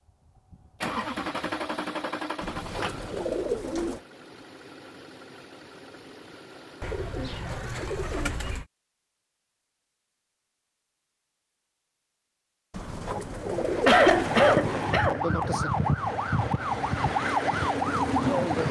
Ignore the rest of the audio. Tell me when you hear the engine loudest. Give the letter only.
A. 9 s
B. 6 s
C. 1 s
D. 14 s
C.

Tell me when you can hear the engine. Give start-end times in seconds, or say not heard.
0.1-8.6.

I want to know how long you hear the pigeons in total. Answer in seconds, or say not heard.
6 s.